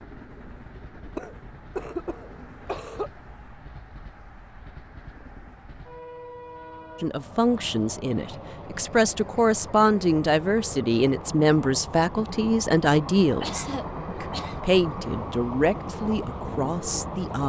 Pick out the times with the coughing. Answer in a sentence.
The coughing can be heard from 1.1 to 3.1 s and from 13.4 to 14.6 s.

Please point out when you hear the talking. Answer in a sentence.
You can hear the talking from 7.0 to 17.4 s.